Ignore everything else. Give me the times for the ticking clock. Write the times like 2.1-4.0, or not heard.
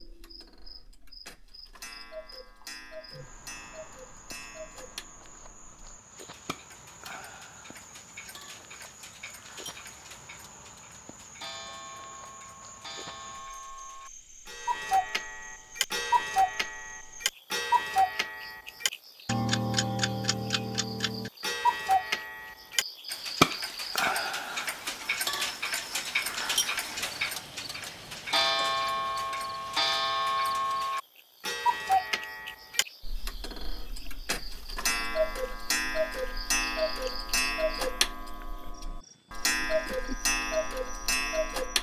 0.0-41.7.